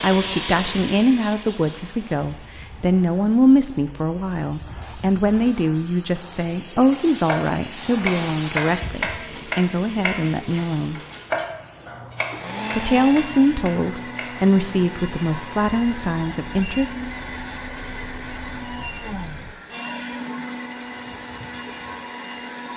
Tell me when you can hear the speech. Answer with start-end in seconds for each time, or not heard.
0.0-11.0, 12.7-16.9.